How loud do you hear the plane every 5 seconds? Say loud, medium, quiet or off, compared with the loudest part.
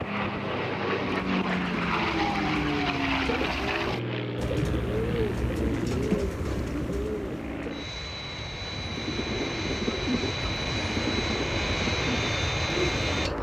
loud, medium, loud.